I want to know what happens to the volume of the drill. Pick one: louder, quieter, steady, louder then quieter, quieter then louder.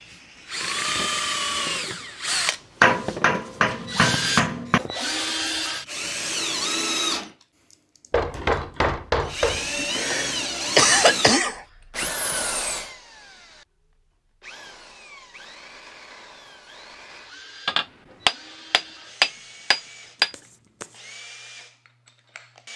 quieter.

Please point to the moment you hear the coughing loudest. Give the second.
11 s.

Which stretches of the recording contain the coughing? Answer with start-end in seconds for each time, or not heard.
4.1-5.0, 9.8-11.6, 20.3-20.9.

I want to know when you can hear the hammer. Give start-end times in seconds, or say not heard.
2.8-4.8, 8.1-9.8, 17.6-20.3.